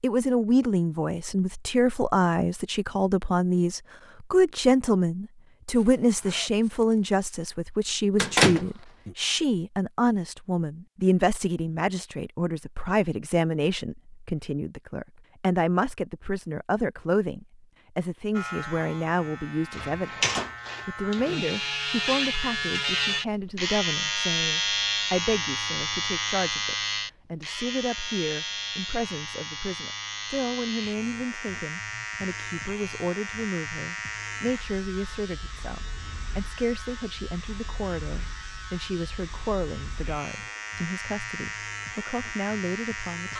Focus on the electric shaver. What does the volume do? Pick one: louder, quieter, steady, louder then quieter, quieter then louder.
quieter.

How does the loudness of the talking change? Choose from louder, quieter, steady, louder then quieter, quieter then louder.
quieter.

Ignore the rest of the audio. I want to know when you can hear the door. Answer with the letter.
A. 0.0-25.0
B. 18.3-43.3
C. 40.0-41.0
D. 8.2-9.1
D.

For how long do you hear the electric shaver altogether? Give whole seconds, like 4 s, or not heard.
25 s.